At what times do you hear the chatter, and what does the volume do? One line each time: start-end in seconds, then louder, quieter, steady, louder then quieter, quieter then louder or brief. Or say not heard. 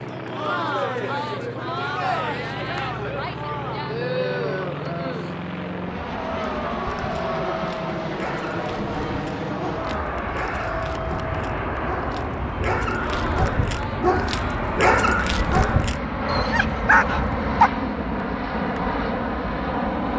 0.1-14.7 quieter.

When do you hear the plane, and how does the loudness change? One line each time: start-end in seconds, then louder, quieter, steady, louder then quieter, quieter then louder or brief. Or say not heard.
0.0-20.1 louder.